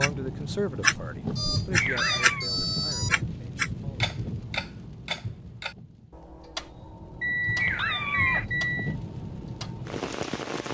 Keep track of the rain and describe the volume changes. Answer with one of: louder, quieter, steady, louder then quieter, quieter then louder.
quieter then louder.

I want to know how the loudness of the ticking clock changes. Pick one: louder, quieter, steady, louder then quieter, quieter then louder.
quieter.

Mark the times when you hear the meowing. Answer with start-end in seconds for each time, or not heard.
1.8-2.5, 7.5-8.4.